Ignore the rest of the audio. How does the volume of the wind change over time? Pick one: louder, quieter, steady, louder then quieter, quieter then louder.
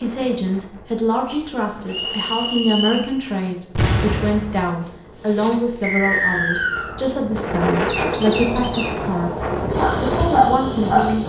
louder.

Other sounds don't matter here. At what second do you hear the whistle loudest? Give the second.
6 s.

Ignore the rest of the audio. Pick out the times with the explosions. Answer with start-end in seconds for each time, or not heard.
3.8-4.7.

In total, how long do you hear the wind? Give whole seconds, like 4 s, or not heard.
11 s.